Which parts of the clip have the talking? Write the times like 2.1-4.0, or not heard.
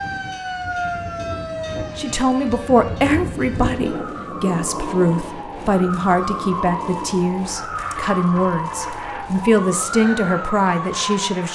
1.9-11.5.